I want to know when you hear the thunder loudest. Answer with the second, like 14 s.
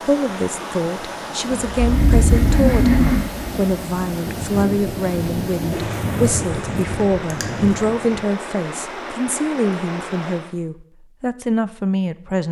6 s.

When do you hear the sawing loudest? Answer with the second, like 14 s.
3 s.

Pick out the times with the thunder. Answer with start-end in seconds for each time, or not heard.
4.2-8.0.